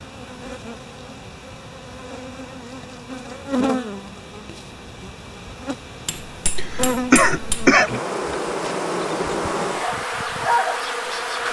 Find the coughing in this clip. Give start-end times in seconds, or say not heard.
6.5-7.9.